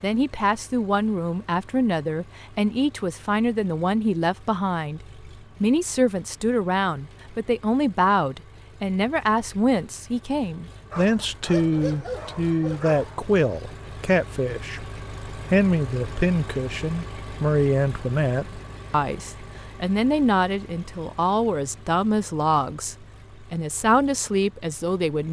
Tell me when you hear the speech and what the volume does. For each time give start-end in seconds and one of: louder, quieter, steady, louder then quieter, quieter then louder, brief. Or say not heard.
0.0-25.2 steady.